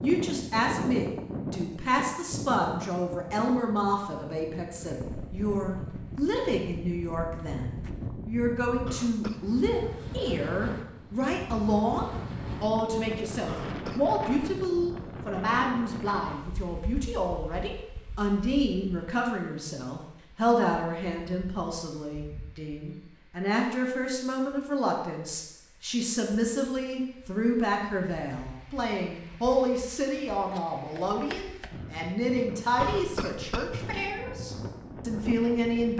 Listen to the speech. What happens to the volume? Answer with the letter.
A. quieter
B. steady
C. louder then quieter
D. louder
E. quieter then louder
B.